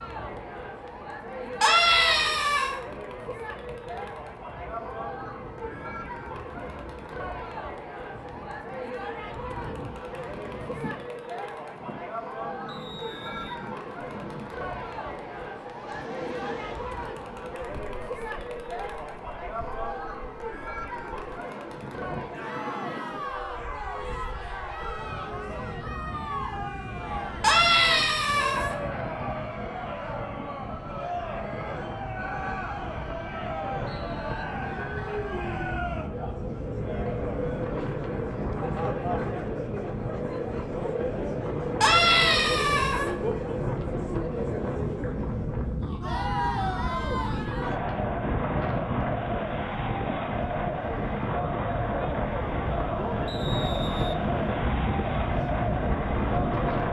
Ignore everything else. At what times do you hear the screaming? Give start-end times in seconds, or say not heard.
1.6-2.8, 27.4-28.8, 41.8-43.1.